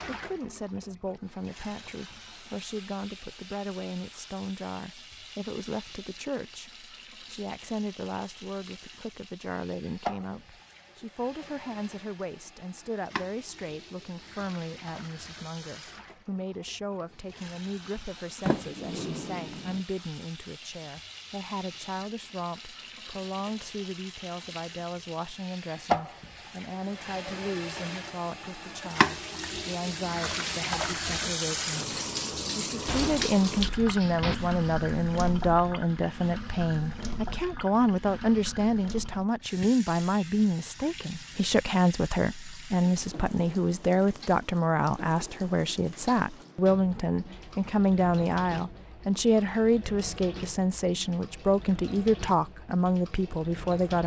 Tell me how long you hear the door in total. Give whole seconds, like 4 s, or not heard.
3 s.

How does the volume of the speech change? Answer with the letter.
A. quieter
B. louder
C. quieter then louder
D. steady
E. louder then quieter
B.